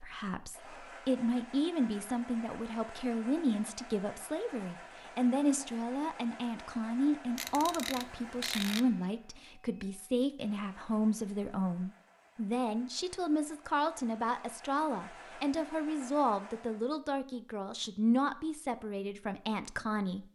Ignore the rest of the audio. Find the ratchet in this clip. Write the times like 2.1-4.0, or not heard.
7.3-8.8.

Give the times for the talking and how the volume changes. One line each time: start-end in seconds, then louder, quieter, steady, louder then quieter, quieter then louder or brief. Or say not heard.
0.0-20.2 steady.